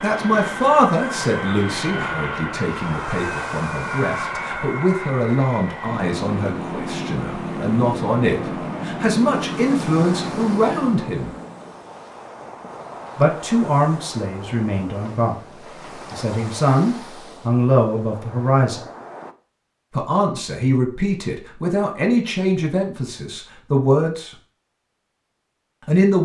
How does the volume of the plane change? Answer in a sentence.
The loudness of the plane stays about the same.